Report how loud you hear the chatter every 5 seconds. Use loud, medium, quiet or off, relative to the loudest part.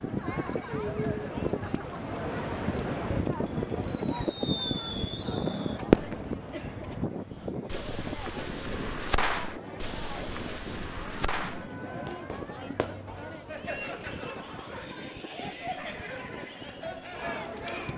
loud, medium, loud, loud.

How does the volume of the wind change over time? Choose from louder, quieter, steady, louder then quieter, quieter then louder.
quieter.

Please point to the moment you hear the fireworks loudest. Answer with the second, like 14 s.
6 s.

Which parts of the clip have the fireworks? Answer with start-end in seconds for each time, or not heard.
3.5-6.3, 7.7-13.3.